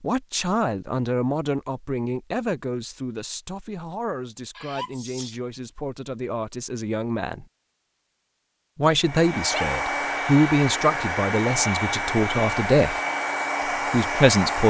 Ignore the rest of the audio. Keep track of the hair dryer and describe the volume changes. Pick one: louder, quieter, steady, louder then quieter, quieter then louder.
steady.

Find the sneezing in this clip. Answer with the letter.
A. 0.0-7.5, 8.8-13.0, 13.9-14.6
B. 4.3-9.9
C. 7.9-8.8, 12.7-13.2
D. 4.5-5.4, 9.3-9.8
D.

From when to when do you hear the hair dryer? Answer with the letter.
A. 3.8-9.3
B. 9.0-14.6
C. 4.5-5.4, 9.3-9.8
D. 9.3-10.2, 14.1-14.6
B.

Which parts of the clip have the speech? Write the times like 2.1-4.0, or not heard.
0.0-7.5, 8.8-13.0, 13.9-14.6.